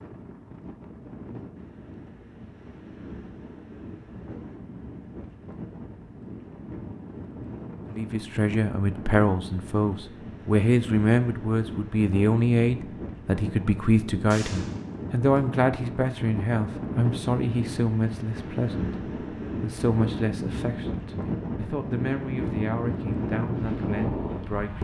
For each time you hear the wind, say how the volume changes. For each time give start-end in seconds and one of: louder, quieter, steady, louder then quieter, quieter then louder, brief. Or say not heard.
0.0-24.7 louder.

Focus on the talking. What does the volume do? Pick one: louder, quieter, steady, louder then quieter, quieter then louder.
quieter.